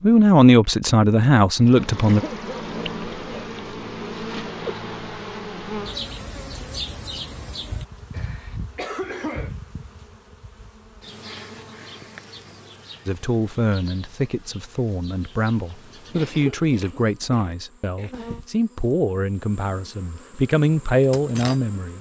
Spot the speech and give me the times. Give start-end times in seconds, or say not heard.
0.0-2.2, 13.1-21.9.